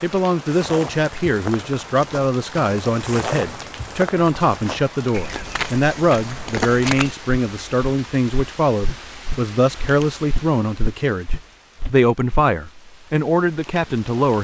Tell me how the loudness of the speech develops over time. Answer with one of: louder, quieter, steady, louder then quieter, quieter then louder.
steady.